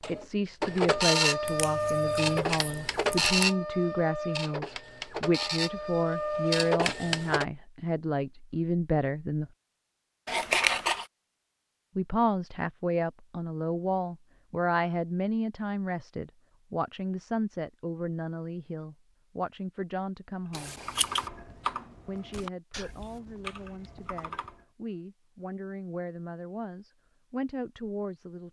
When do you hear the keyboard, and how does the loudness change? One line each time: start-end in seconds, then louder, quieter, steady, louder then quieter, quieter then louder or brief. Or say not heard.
20.6-24.6 quieter.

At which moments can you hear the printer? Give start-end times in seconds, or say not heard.
0.0-7.5.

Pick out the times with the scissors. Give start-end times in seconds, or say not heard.
1.4-3.5, 10.2-11.1, 20.5-21.3.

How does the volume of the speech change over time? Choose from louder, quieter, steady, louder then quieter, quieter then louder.
quieter.